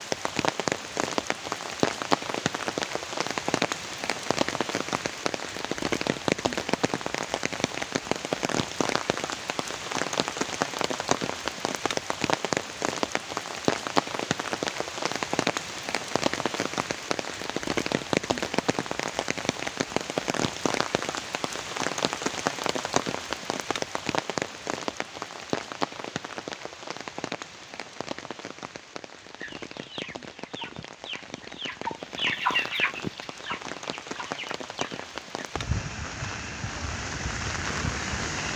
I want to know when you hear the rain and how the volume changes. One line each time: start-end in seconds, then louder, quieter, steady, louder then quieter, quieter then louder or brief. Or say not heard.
0.0-38.5 quieter.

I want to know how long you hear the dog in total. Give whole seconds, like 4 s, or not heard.
not heard.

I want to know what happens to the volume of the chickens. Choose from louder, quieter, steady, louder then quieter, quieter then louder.
louder then quieter.